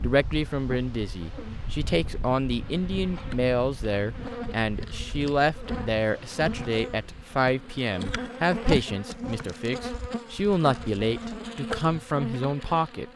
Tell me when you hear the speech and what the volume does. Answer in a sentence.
The speech can be heard from 0.0 to 13.1 s, at a steady volume.